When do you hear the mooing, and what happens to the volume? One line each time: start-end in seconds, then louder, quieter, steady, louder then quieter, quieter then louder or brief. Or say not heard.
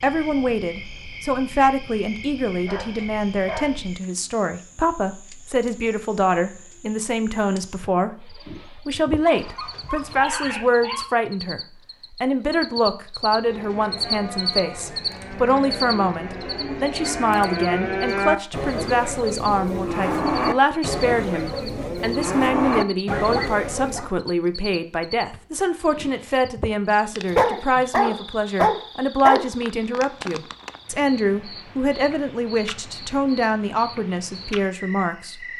13.3-24.1 louder.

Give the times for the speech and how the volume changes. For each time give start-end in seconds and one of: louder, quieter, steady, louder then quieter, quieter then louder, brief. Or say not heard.
0.0-35.4 steady.